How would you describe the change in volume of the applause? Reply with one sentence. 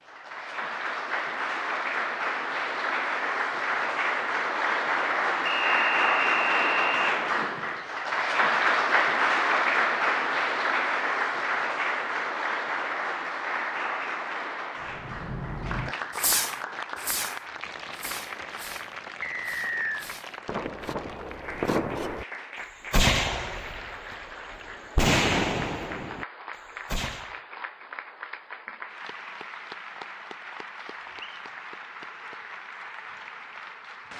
The volume of the applause goes down.